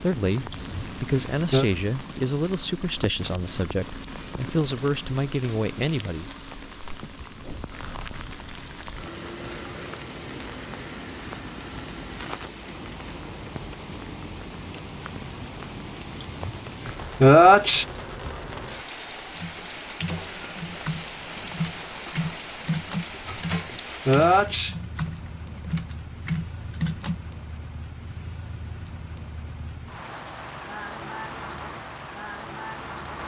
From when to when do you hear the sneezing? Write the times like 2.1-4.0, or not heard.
0.5-1.6, 16.4-17.9, 23.2-24.8.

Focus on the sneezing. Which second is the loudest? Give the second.
17 s.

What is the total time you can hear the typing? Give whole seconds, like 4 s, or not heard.
8 s.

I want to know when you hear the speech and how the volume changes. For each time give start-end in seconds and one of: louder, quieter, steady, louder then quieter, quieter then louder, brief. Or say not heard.
0.0-6.2 steady.